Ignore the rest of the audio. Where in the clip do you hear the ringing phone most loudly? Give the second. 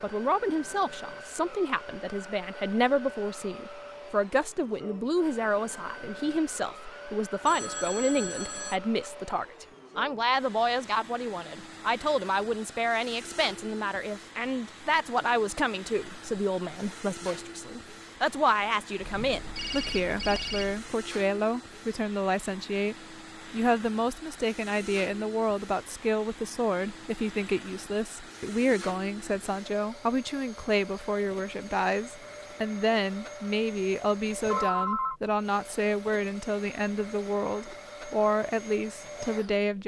35 s.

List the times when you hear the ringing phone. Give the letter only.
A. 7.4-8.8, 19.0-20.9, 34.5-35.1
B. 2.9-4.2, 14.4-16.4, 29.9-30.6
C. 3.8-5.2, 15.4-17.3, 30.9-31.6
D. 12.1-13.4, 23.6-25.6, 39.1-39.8
A.